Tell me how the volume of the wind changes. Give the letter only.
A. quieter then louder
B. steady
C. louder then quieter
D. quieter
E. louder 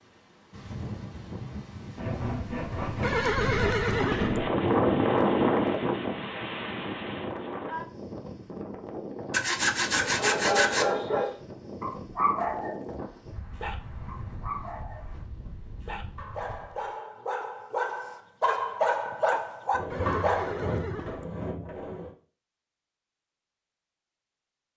C.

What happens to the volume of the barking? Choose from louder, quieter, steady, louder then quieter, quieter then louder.
quieter then louder.